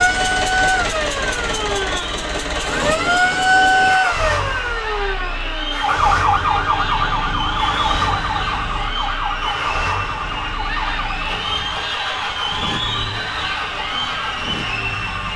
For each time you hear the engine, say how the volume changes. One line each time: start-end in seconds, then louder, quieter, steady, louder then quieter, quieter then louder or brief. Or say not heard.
0.0-15.3 quieter.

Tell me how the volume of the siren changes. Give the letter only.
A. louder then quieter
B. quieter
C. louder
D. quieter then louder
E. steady
B.